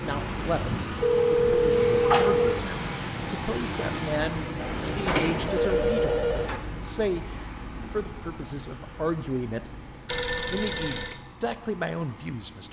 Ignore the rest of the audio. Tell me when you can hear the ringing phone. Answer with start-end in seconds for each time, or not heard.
1.0-2.6, 4.5-6.6, 10.1-11.2.